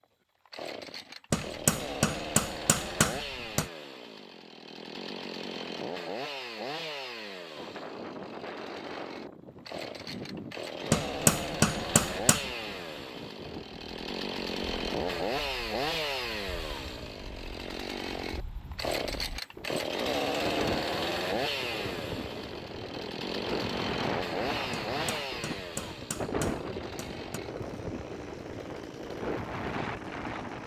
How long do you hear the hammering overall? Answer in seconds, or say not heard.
6 s.